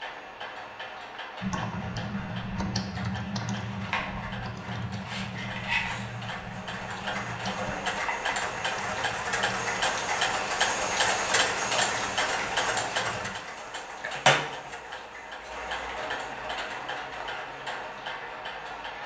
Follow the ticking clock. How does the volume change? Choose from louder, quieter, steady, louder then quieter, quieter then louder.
louder then quieter.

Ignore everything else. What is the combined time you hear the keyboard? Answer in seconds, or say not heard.
12 s.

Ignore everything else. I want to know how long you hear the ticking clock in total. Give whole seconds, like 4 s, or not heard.
19 s.